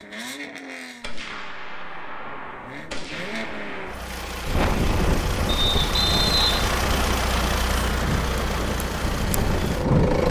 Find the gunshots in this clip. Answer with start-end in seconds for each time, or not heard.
1.0-4.0.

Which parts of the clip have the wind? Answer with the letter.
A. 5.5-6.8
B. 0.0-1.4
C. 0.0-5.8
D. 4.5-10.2
D.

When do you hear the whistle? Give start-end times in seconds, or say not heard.
5.5-6.8.